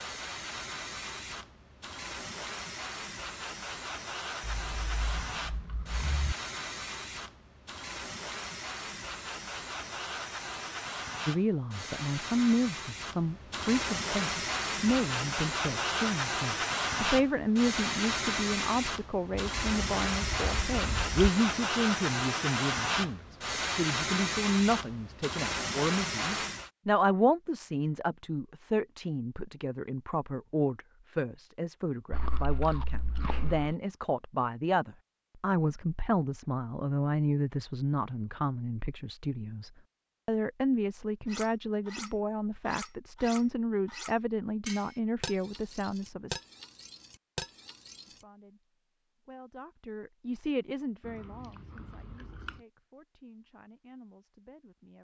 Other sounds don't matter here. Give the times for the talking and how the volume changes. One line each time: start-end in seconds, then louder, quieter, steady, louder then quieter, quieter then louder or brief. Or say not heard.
11.2-46.4 steady
48.0-54.9 louder then quieter.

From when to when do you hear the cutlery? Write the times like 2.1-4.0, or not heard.
41.2-48.2.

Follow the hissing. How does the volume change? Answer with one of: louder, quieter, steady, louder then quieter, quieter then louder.
louder.